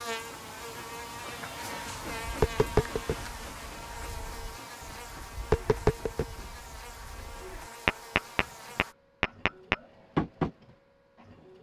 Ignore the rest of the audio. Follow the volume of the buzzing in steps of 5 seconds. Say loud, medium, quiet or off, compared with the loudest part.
loud, medium, off.